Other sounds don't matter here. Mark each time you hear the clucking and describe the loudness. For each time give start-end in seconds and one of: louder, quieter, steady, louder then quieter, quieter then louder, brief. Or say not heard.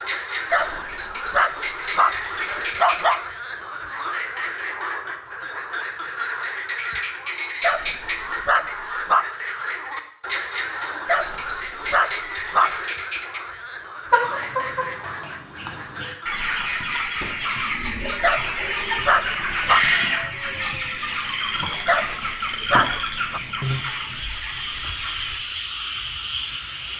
14.1-25.4 louder then quieter.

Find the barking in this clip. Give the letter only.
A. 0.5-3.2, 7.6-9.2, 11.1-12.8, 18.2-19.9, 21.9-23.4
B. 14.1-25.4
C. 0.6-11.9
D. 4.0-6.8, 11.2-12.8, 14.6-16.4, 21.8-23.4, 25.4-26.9
A.